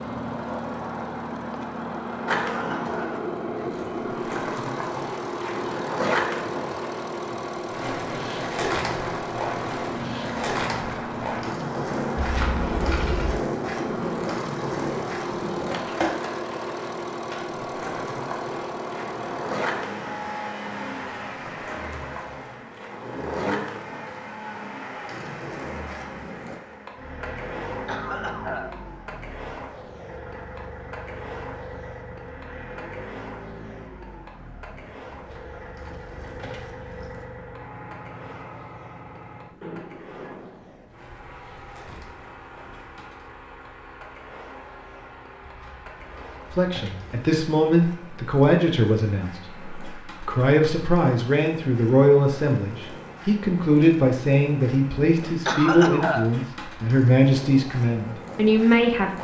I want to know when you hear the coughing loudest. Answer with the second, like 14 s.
56 s.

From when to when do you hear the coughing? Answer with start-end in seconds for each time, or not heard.
2.5-3.2, 27.9-28.7, 55.5-56.3.